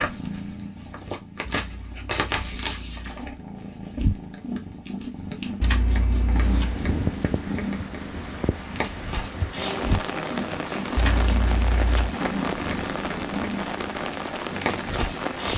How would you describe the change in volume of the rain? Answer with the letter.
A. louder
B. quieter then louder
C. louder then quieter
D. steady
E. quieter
D.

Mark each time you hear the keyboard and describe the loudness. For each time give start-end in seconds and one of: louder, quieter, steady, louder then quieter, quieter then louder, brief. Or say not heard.
not heard.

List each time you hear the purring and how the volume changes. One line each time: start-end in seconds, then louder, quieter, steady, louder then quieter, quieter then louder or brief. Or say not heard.
0.0-15.5 steady.